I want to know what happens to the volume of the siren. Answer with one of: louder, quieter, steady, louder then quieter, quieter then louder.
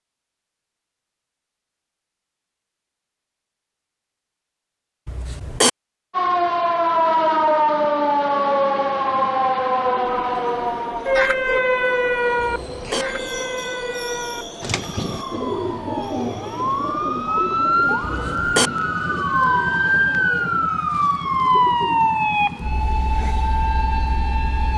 quieter then louder.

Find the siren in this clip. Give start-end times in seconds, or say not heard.
6.1-24.7.